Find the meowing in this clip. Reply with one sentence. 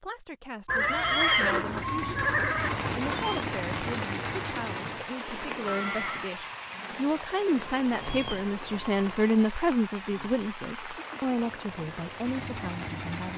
You can hear the meowing from 0.7 to 3.5 s and from 7.7 to 9.3 s.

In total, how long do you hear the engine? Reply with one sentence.
The engine can be heard for 6 seconds in total.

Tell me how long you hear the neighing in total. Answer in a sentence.
You can hear the neighing for 4 seconds altogether.